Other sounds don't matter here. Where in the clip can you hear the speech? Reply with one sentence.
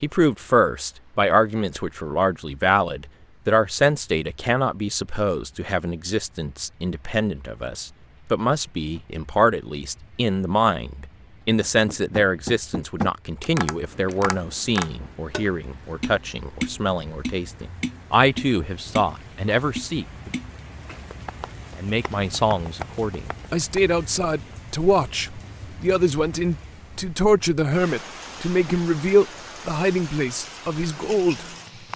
The speech can be heard from 0.0 to 20.3 s and from 21.8 to 31.4 s.